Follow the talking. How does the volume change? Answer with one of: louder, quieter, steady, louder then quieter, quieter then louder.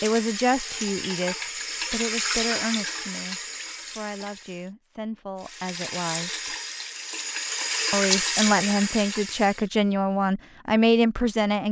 quieter then louder.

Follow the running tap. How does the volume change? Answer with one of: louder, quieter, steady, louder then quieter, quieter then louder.
quieter then louder.